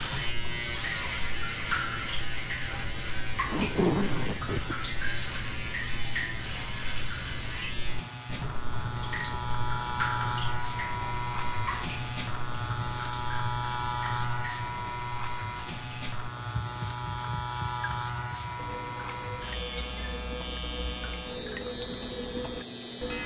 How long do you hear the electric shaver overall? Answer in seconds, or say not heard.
23 s.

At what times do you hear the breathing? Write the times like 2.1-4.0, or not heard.
not heard.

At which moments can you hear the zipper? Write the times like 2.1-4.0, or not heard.
3.4-4.8.